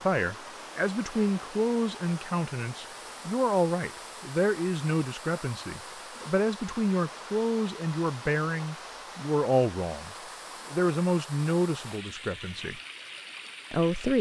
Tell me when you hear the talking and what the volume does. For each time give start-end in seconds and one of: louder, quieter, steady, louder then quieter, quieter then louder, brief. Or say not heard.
0.0-12.8 steady
13.7-14.1 brief.